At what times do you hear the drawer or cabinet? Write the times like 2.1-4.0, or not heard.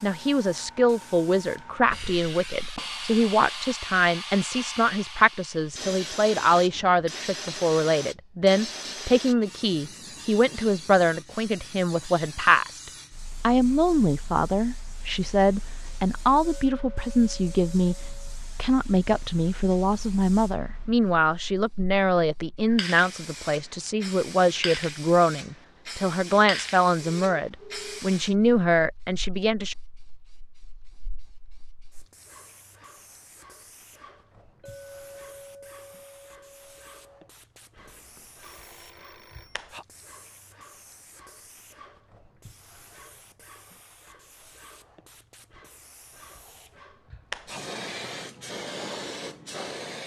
not heard.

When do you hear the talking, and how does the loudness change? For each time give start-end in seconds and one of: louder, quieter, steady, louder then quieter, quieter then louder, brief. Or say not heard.
0.0-29.8 steady.